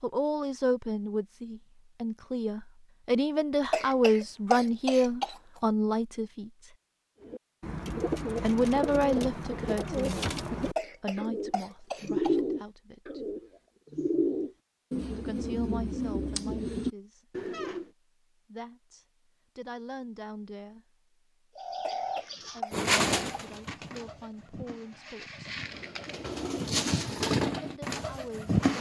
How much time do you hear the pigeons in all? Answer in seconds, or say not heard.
18 s.